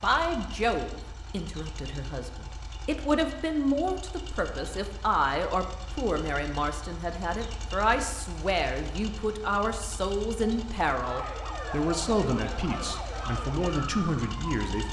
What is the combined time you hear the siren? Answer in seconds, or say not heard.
4 s.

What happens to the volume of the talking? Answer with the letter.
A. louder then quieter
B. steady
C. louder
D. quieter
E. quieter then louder
B.